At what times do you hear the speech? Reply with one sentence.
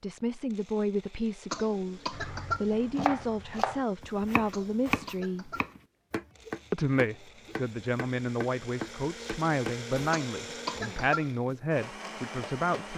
You can hear the speech from 0.0 to 5.5 s and from 6.7 to 12.9 s.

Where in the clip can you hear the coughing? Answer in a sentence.
You can hear the coughing from 1.5 to 2.7 s, from 4.5 to 5.8 s and from 10.1 to 11.3 s.